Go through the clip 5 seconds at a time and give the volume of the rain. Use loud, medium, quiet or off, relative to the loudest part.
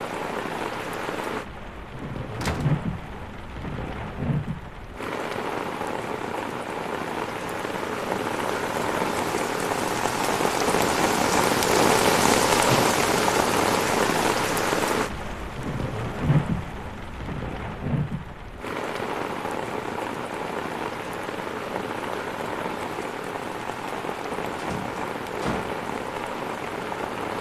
medium, medium, loud, medium, medium, medium.